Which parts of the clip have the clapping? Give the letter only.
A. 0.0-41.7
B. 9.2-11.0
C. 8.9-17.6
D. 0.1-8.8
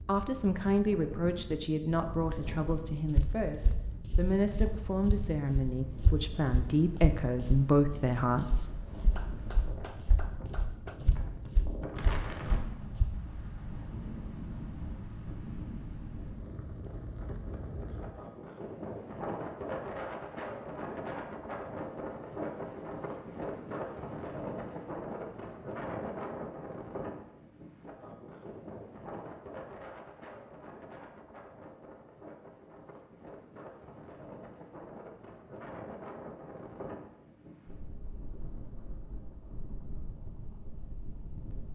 B.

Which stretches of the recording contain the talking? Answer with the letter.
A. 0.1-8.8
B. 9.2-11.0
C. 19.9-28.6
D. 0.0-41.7
A.